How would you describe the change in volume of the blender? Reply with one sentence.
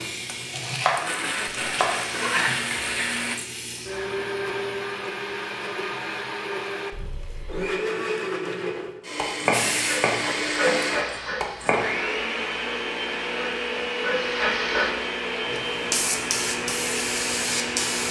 The loudness of the blender stays about the same.